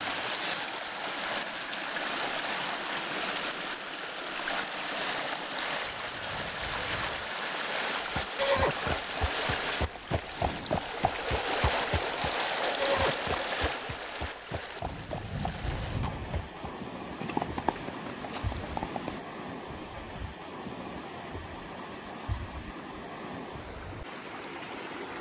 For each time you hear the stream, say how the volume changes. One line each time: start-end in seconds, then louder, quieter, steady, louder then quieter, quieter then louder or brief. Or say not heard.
0.0-25.1 quieter.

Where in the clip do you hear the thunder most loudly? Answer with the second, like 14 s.
16 s.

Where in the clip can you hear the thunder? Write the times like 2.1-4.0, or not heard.
5.8-7.3, 14.8-16.4.